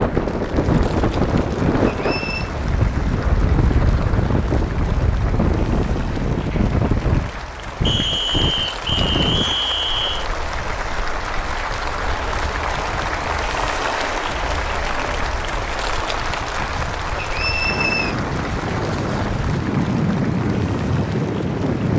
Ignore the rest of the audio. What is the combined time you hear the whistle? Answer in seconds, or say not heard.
4 s.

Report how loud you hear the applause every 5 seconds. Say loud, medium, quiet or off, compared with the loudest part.
medium, medium, loud, loud, medium.